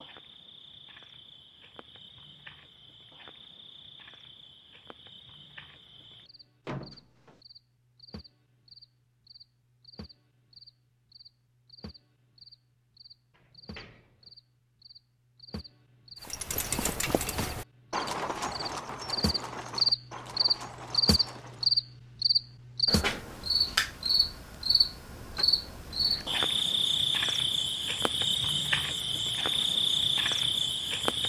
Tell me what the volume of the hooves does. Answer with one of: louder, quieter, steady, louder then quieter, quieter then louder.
quieter.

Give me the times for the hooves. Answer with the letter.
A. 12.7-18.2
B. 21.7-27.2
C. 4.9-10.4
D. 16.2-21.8
D.